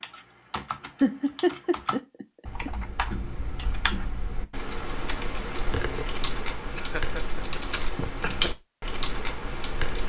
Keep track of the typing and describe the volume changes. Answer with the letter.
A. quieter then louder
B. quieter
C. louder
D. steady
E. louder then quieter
C.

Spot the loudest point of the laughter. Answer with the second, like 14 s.
1 s.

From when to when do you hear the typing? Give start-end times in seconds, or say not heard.
0.0-10.0.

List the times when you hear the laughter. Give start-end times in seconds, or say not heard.
1.0-2.7, 6.8-8.5.